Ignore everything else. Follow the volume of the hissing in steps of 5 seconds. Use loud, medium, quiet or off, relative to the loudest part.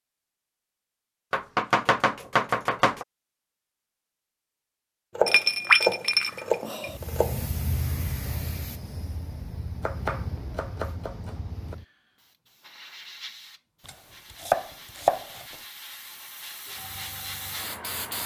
off, loud, medium, loud.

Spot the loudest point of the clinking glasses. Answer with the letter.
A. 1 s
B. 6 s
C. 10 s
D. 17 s
B.